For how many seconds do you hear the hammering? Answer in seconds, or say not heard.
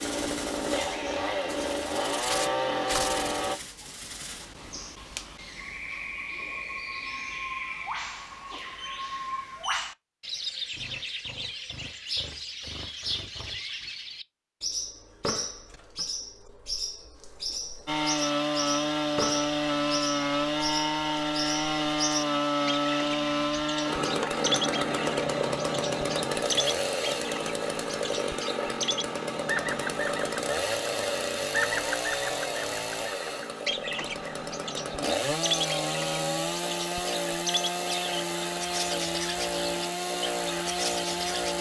not heard.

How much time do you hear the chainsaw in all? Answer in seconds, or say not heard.
27 s.